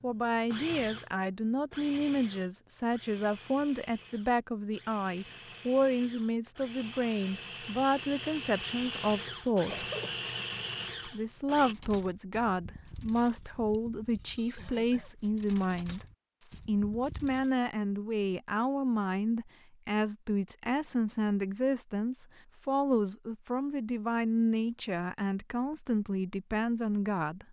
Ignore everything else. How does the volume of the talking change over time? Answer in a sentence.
The loudness of the talking stays about the same.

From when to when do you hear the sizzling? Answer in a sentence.
The sizzling can't be heard in this clip.